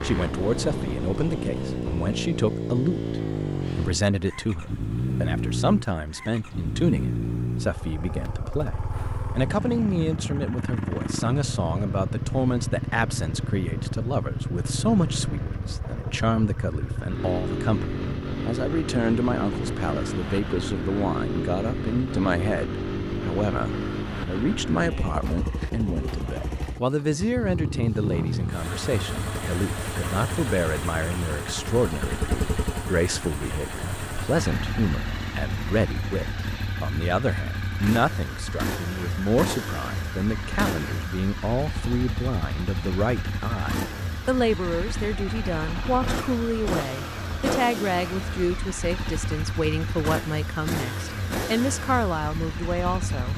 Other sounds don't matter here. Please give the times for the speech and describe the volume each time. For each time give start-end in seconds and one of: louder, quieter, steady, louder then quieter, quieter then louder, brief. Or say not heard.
0.0-53.3 steady.